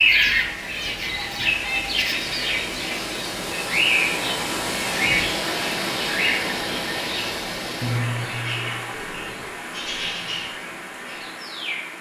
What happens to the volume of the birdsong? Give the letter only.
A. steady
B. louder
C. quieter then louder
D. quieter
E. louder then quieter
D.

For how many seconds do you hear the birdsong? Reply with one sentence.
You can hear the birdsong for 12 seconds altogether.